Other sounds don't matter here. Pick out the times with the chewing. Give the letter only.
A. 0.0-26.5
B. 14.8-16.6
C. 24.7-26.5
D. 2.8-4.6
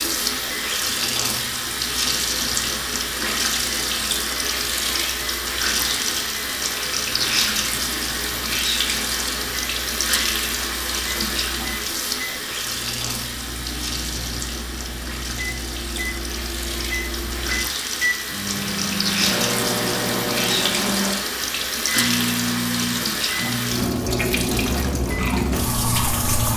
C.